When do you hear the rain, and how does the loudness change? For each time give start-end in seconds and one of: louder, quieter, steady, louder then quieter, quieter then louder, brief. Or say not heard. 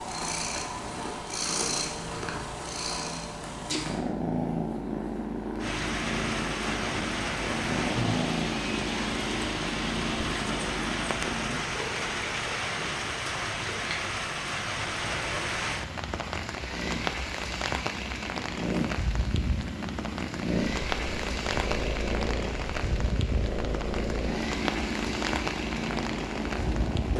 5.6-27.1 steady.